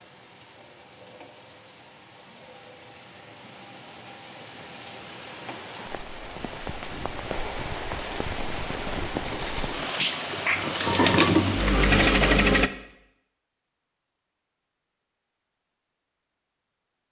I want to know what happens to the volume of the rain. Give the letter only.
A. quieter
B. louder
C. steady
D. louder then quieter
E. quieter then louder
B.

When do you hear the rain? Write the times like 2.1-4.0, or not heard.
0.0-12.1.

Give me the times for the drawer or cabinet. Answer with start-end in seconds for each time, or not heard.
not heard.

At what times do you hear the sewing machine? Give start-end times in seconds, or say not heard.
9.2-12.7.